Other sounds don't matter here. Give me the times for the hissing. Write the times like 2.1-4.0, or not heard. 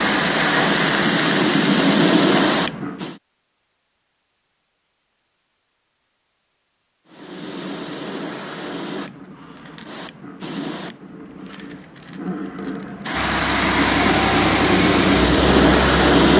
0.0-3.1, 7.0-16.3.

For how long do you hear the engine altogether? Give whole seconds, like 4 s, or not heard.
3 s.